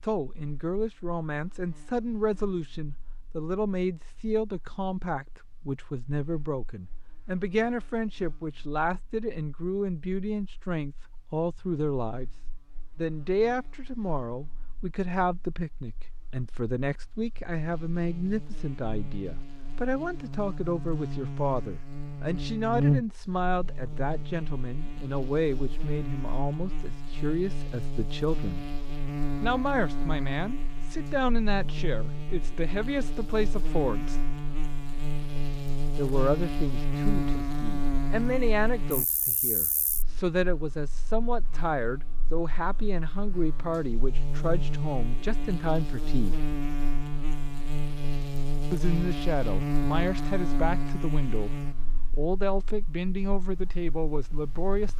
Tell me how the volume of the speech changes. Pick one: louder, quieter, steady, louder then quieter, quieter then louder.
steady.